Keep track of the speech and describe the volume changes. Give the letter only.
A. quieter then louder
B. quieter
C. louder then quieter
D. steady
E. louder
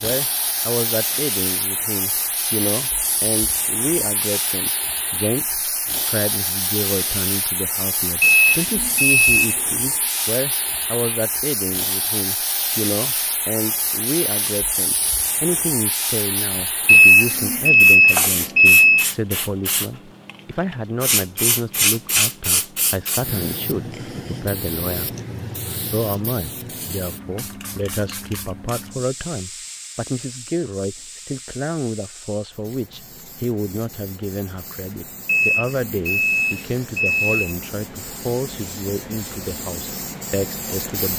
D.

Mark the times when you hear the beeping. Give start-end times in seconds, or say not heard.
8.2-9.6, 16.9-19.1, 35.2-37.5.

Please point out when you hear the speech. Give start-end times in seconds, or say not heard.
0.0-41.1.